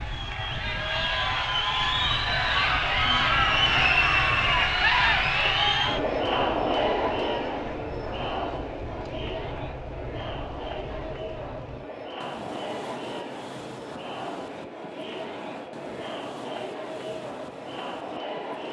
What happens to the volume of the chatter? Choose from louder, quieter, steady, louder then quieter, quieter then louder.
quieter.